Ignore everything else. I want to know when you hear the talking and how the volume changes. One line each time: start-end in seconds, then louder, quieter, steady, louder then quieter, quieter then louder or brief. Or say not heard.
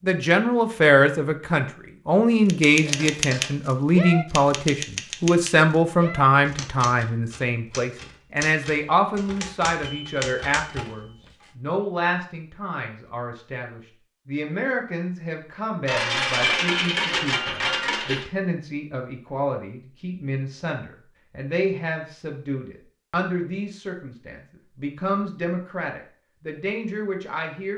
0.0-27.7 quieter.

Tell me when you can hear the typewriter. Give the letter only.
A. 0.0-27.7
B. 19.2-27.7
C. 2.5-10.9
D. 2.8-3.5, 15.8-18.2
C.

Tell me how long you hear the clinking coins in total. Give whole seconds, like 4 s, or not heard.
3 s.